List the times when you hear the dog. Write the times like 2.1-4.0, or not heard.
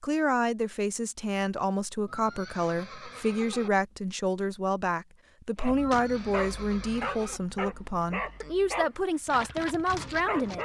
5.5-10.6.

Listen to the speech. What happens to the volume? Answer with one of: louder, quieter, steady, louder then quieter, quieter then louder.
steady.